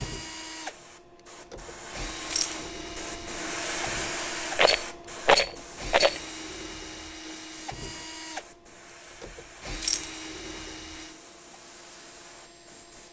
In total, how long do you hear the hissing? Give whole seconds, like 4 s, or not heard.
13 s.